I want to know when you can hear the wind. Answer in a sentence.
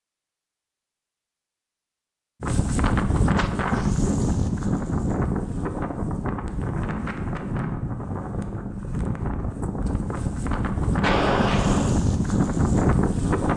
You can hear the wind from 2.4 to 13.5 s.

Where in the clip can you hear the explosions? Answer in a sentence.
The explosions can be heard from 11.0 to 11.9 s.